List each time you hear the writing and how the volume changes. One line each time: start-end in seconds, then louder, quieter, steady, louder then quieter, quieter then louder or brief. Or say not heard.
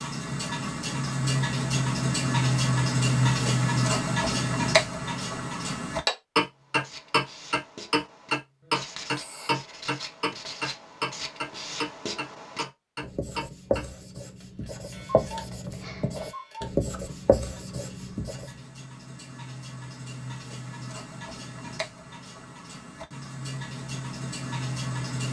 6.4-18.6 louder.